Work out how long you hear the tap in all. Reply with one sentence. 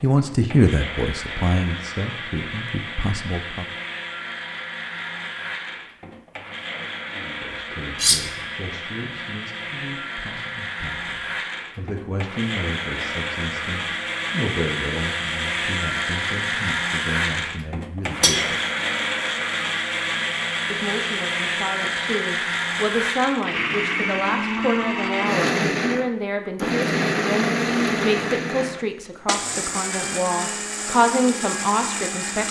You can't hear the tap here.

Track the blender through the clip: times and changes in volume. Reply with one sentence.
The blender can be heard from 0.0 to 32.4 s, getting louder.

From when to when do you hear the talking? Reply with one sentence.
The talking can be heard from 0.0 to 3.6 s, from 7.2 to 18.6 s and from 20.7 to 32.4 s.